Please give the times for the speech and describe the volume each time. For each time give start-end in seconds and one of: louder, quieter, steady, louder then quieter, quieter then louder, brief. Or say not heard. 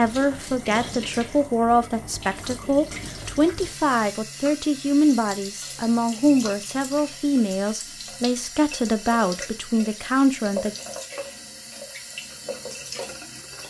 0.0-10.8 steady.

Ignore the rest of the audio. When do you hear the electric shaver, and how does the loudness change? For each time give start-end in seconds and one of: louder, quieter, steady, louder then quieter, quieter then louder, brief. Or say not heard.
not heard.